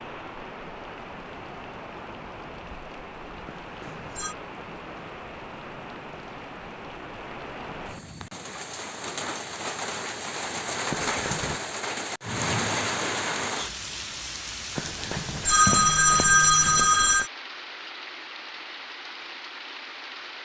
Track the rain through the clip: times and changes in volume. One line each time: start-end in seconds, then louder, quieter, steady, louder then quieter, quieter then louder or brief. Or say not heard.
0.0-20.4 louder then quieter.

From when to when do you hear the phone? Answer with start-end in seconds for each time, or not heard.
3.5-4.3, 10.9-11.6, 14.8-17.3.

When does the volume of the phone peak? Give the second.
16 s.